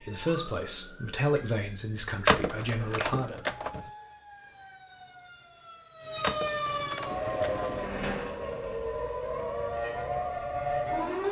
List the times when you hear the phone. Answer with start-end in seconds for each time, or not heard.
2.2-3.9, 6.2-7.7.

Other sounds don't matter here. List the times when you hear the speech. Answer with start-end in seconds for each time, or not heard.
0.0-3.4.